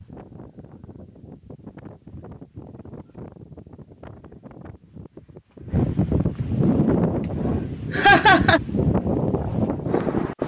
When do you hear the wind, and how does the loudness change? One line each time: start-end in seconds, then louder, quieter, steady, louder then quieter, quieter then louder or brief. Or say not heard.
0.0-10.4 louder.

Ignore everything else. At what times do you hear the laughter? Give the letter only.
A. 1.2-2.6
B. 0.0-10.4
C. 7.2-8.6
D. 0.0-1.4
C.